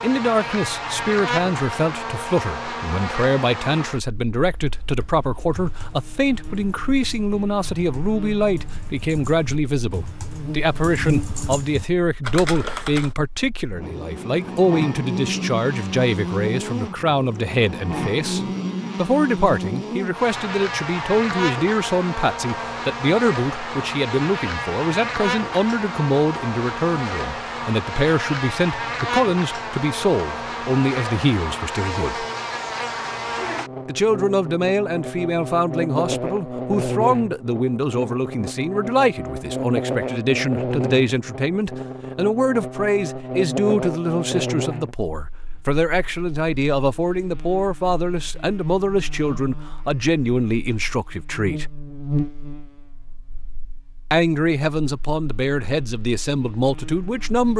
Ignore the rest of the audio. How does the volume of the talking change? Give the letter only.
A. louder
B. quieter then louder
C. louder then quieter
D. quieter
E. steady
E.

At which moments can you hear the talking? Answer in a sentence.
You can hear the talking from 0.0 to 32.2 s, from 33.9 to 51.7 s and from 54.1 to 57.5 s.